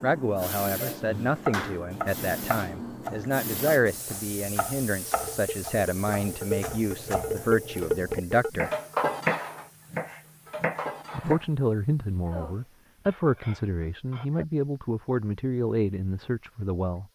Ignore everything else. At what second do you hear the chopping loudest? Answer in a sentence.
The volume of the chopping peaks at 9 seconds.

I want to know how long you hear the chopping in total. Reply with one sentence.
The chopping can be heard for 10 seconds in total.